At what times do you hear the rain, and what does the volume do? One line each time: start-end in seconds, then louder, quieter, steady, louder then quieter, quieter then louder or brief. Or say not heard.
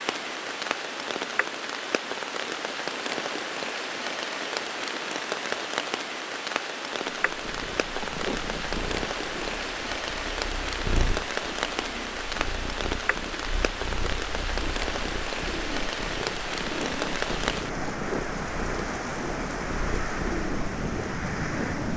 0.0-21.9 steady.